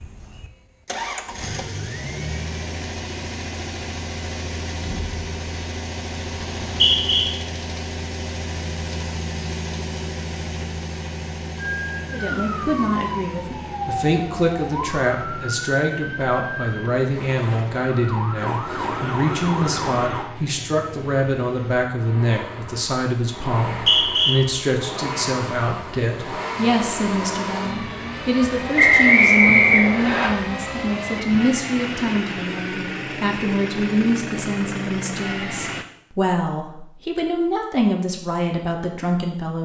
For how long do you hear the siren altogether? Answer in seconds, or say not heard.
9 s.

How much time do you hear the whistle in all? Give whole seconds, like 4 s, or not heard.
3 s.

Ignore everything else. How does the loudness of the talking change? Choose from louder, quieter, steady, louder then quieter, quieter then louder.
steady.